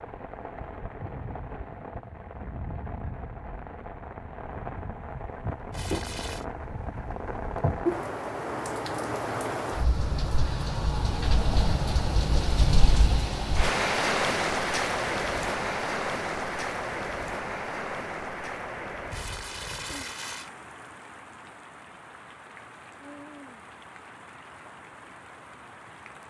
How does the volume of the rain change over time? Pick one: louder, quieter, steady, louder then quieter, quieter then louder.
louder then quieter.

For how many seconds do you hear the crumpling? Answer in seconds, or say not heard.
2 s.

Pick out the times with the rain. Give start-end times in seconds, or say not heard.
0.0-26.2.